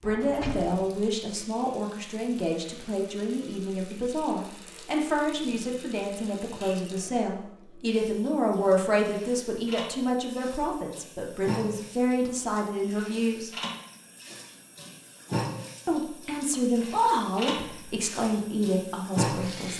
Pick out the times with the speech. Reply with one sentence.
You can hear the speech from 0.0 to 13.5 s and from 15.8 to 19.7 s.